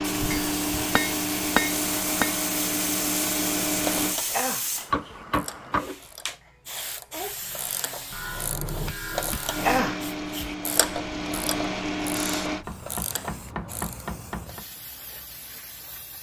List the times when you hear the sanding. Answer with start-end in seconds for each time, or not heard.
not heard.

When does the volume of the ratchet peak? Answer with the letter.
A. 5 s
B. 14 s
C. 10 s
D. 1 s
C.